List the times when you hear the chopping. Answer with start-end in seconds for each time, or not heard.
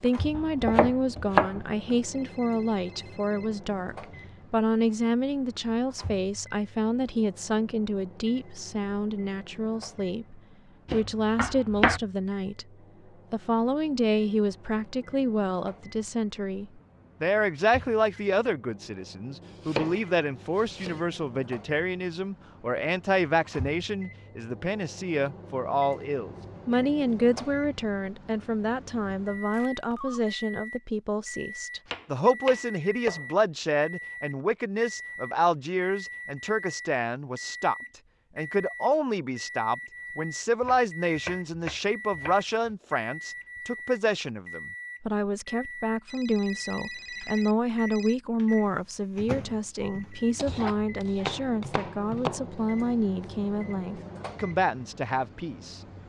0.3-1.9, 10.8-12.0, 19.4-21.1, 31.9-33.2, 40.6-42.8, 50.4-52.5.